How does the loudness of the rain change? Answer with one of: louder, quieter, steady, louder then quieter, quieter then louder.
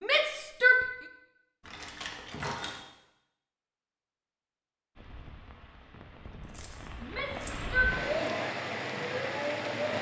louder.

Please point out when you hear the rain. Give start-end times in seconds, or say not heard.
5.0-9.9.